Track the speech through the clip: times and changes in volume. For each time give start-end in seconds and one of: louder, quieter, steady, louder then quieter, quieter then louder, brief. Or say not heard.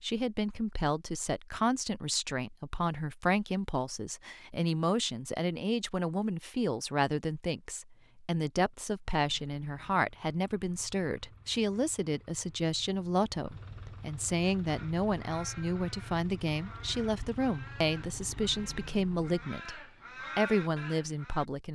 0.0-21.6 steady.